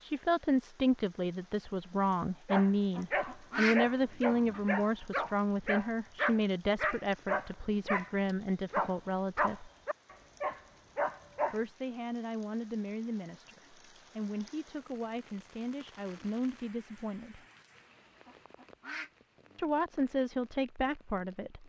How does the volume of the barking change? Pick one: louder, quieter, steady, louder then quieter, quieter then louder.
steady.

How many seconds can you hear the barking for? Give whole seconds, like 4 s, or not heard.
9 s.